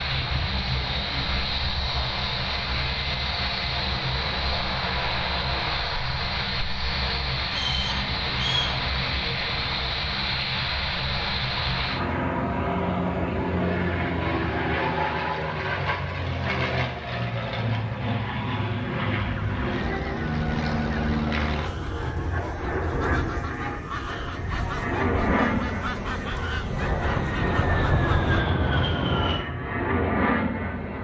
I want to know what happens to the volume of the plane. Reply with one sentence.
The volume of the plane stays about the same.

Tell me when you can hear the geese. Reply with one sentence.
You can hear the geese from 19.2 to 28.4 s.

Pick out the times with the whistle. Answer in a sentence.
You can hear the whistle from 7.5 to 8.8 s.